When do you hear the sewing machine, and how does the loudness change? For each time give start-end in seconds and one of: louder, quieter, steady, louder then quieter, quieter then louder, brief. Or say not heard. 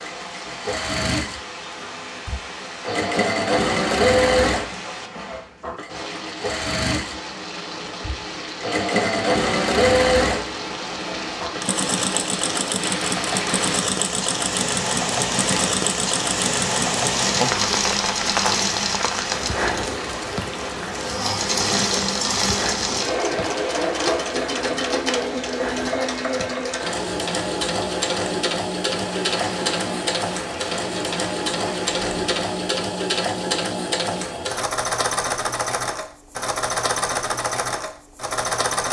0.0-38.8 steady.